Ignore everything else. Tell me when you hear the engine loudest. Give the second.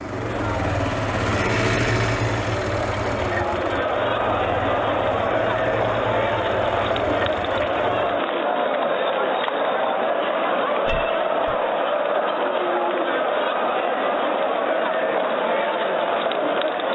2 s.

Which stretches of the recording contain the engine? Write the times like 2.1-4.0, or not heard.
0.0-8.2.